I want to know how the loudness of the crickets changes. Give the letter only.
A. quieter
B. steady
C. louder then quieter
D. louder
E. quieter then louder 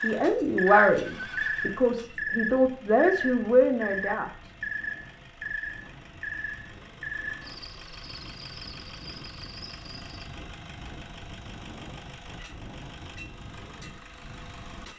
A.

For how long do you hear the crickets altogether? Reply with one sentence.
The crickets can be heard for 10 seconds in total.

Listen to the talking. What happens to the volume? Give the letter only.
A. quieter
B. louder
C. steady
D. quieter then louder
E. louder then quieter
D.